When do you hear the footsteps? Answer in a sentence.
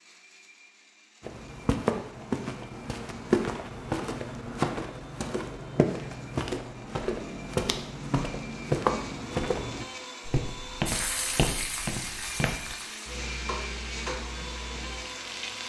You can hear the footsteps from 1.2 to 12.8 s.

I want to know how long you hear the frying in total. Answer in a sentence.
The frying can be heard for 5 seconds in total.